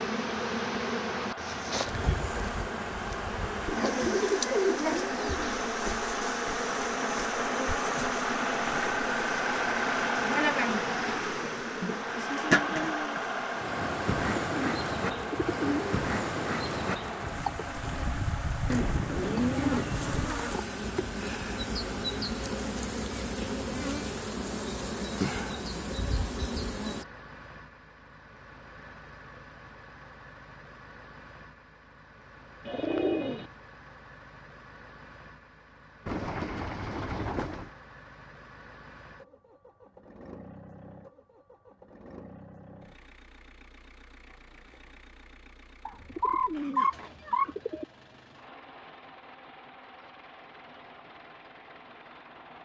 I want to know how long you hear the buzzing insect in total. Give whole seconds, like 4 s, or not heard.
27 s.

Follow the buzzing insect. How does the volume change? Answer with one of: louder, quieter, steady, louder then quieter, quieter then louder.
steady.